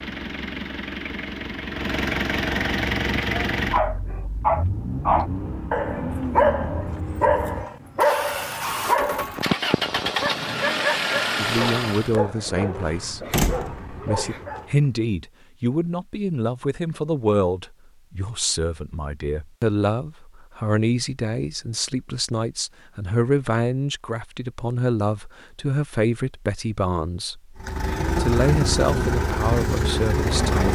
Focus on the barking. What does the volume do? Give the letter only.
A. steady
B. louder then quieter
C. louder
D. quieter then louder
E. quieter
E.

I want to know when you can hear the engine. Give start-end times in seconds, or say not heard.
0.0-12.2, 27.6-30.7.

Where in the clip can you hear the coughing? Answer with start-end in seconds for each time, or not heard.
not heard.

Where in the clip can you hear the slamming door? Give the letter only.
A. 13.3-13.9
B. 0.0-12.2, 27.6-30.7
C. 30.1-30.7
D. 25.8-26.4
A.